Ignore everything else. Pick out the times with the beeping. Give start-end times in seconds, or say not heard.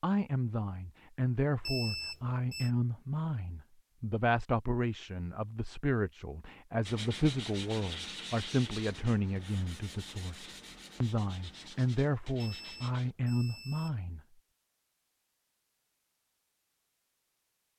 1.6-2.7, 12.4-14.0.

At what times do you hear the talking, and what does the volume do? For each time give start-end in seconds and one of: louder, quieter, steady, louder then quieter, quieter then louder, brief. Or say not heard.
0.0-14.2 steady.